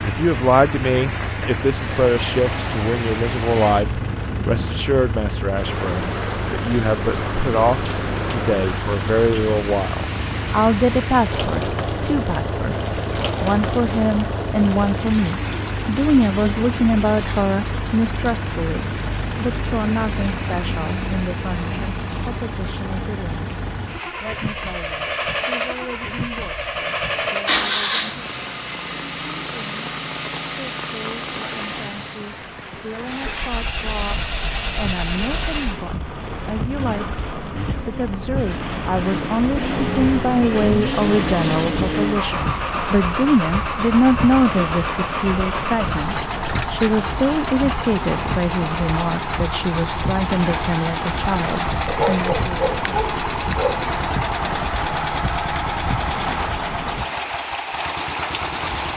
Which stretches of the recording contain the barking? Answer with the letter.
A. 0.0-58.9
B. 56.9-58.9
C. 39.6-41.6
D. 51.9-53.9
D.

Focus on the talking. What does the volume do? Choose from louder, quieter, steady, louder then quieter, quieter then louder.
quieter then louder.